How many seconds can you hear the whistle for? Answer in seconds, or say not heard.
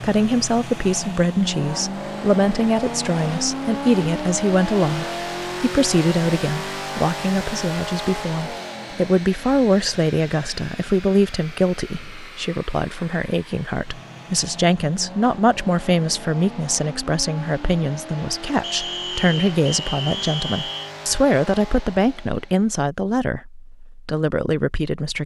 2 s.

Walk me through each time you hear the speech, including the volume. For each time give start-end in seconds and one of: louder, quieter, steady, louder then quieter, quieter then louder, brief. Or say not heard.
0.0-25.2 steady.